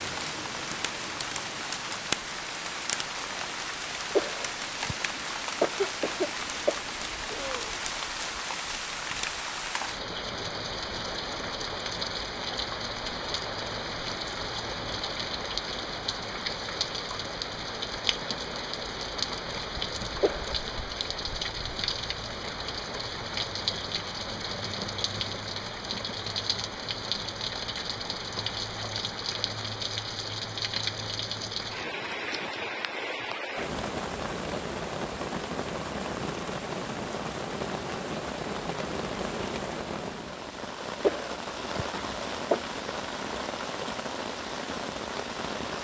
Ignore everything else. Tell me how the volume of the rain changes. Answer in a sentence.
The volume of the rain stays about the same.